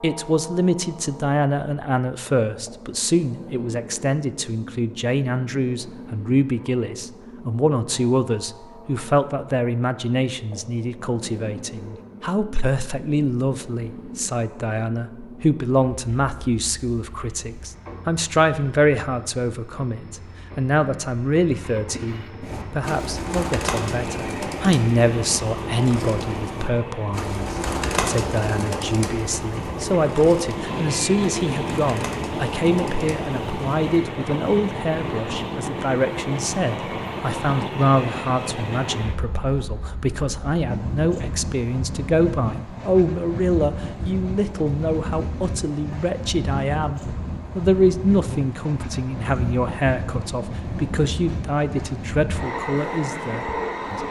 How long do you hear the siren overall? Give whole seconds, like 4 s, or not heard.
not heard.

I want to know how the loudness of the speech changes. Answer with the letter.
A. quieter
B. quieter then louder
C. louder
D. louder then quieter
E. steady
E.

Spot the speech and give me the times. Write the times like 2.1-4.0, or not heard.
0.0-54.0.